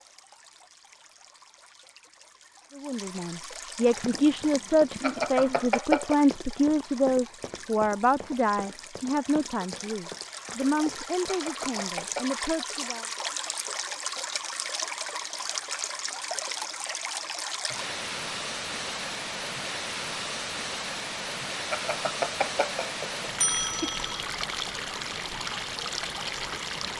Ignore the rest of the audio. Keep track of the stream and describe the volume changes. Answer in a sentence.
The volume of the stream goes up.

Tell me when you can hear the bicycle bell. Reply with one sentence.
You can hear the bicycle bell from 5.0 to 6.2 s, from 11.2 to 12.3 s and from 21.7 to 24.2 s.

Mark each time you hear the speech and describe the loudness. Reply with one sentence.
You can hear the speech from 2.8 to 13.1 s, getting quieter.